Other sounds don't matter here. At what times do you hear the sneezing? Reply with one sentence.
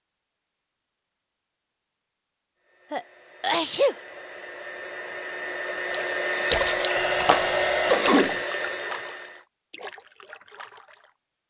The sneezing can be heard from 2.9 to 4.0 s and from 7.8 to 8.3 s.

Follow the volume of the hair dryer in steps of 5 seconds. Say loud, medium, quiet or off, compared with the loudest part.
quiet, loud, off.